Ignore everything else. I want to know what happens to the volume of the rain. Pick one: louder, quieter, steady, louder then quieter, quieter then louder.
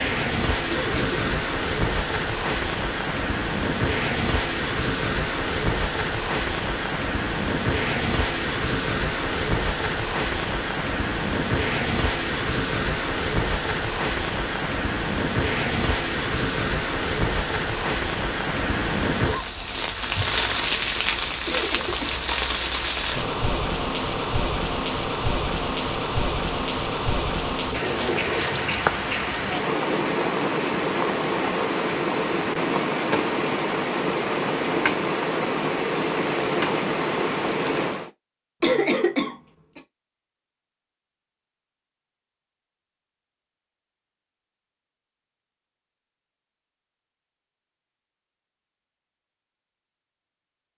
steady.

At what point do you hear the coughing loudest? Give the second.
39 s.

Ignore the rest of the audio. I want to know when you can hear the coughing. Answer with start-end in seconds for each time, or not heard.
0.7-1.2, 21.4-22.2, 38.6-39.8.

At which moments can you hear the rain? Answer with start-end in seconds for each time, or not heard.
0.0-38.1.